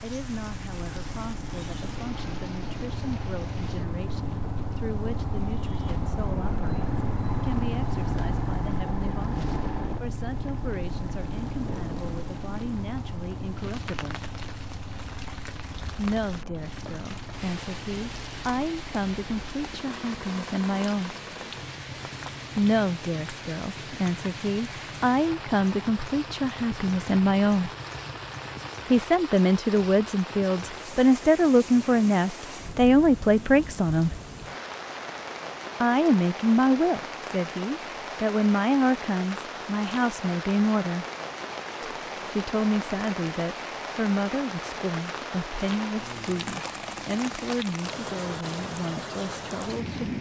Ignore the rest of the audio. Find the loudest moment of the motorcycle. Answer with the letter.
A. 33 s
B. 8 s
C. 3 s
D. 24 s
B.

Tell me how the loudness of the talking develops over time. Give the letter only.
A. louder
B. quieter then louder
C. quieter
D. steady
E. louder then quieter
E.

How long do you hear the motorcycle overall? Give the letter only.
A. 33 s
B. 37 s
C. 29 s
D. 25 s
C.